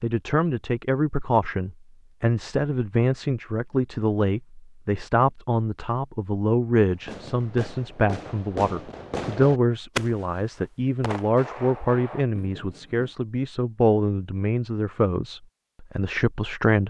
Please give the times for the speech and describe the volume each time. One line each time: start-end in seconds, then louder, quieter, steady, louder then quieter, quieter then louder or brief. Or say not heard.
0.0-16.8 steady.